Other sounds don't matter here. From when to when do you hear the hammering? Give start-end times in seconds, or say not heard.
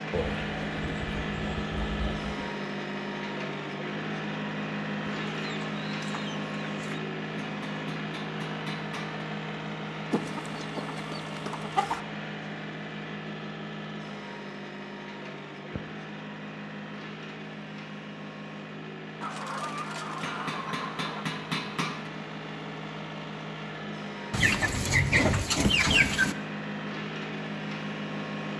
7.5-9.2, 20.2-22.1.